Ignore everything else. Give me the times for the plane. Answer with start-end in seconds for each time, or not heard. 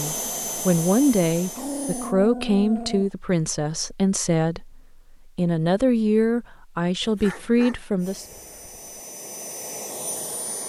0.0-2.1, 8.0-10.6.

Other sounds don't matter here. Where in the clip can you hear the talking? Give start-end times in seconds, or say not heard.
0.0-8.2.